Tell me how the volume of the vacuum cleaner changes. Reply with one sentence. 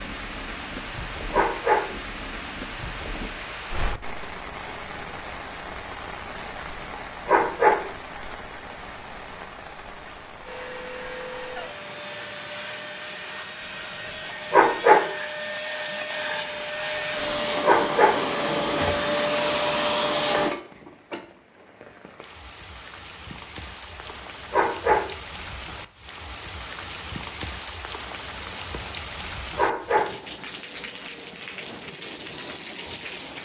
The volume of the vacuum cleaner goes up.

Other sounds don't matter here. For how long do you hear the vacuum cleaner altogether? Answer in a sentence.
The vacuum cleaner can be heard for 10 seconds in total.